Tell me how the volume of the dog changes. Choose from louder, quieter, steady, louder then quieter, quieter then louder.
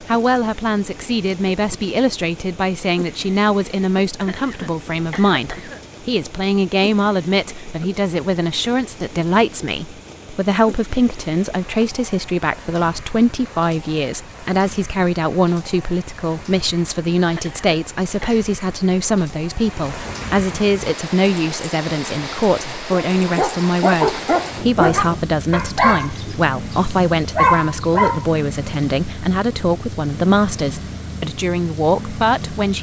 quieter then louder.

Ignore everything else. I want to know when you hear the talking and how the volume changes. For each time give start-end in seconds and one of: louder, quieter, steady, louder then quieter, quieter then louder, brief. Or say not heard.
0.0-32.7 steady.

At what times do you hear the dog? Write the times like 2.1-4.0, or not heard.
22.9-28.2.